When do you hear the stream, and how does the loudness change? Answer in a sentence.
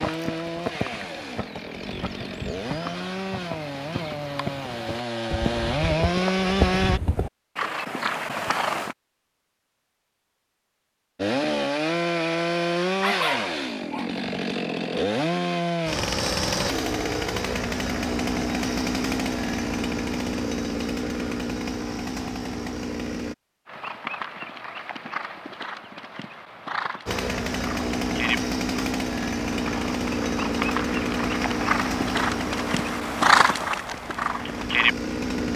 The stream can't be heard in this clip.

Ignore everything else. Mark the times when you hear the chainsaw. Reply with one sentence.
The chainsaw can be heard from 0.0 to 7.0 s, from 11.2 to 23.4 s and from 27.1 to 35.5 s.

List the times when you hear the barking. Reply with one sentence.
The barking can be heard from 13.0 to 14.2 s.